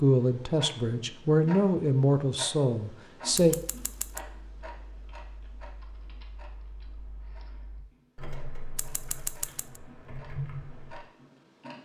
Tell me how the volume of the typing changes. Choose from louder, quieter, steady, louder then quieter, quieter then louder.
louder.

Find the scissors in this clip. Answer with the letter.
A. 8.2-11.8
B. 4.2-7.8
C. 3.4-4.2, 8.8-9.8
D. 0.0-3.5
C.